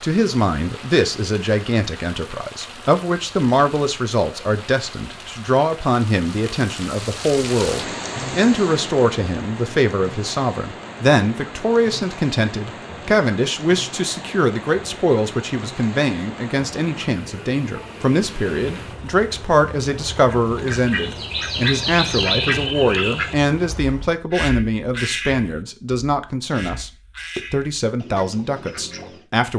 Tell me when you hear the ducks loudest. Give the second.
22 s.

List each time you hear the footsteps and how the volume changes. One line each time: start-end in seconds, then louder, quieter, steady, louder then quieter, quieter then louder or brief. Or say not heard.
not heard.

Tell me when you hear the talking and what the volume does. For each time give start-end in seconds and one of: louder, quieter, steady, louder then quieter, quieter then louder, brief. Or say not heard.
0.0-29.5 steady.